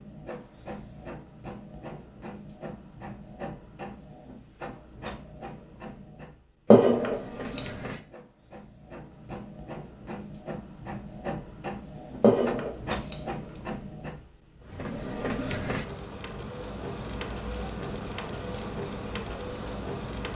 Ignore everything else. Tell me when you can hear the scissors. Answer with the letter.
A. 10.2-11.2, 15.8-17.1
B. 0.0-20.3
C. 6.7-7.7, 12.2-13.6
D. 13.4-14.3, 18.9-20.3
C.